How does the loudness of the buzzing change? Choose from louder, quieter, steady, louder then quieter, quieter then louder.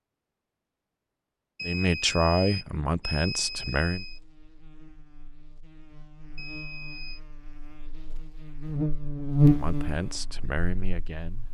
louder then quieter.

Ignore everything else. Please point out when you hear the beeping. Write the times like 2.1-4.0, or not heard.
1.6-4.2, 6.3-7.2.